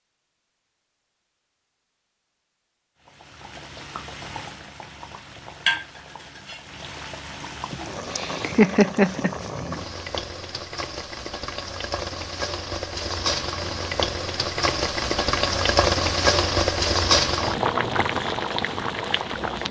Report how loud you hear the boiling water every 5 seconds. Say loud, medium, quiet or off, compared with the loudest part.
quiet, medium, medium, loud.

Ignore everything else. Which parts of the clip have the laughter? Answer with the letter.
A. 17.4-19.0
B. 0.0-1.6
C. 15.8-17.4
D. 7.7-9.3
D.